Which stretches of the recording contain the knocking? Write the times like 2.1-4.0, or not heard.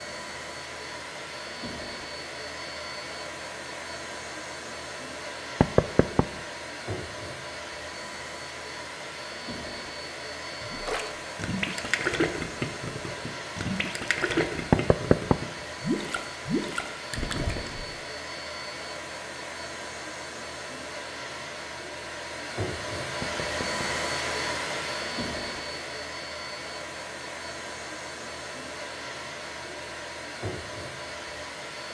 5.6-6.2, 14.7-15.3, 23.2-23.9.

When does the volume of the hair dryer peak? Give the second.
24 s.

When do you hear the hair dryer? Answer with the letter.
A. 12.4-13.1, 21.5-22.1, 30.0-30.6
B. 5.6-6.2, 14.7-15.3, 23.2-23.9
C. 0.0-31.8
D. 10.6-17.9
C.